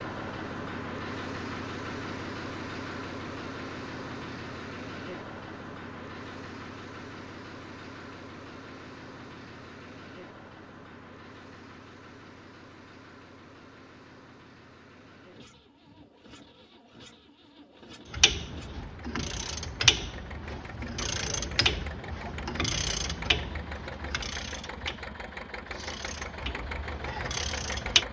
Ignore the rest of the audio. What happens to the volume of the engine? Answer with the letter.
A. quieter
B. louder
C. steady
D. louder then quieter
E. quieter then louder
E.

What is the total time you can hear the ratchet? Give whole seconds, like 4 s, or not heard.
10 s.